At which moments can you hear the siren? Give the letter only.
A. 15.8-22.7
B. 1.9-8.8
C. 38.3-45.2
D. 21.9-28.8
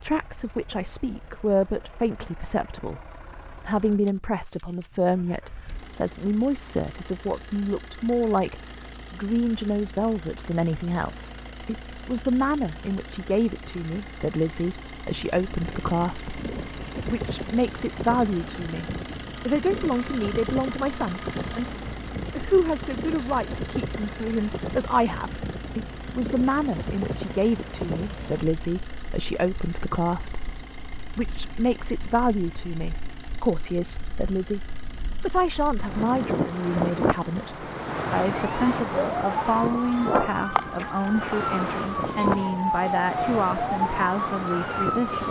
C.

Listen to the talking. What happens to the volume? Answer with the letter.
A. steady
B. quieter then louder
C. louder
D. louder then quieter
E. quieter
A.